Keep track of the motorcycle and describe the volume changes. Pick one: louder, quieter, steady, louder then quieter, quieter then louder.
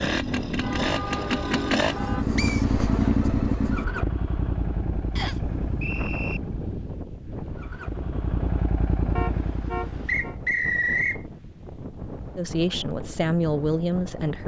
quieter then louder.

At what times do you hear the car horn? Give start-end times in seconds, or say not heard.
0.6-2.2, 9.2-10.3.